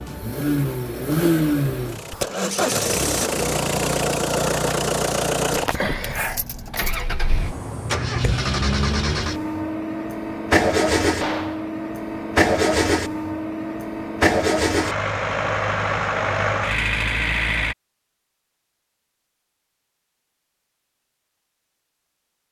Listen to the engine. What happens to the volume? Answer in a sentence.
The loudness of the engine stays about the same.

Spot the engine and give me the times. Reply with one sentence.
You can hear the engine from 0.0 to 17.8 s.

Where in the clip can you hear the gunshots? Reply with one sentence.
You can hear the gunshots from 11.2 to 11.7 s.